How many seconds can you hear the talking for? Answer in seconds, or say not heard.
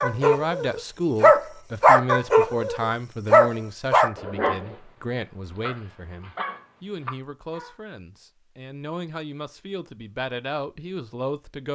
12 s.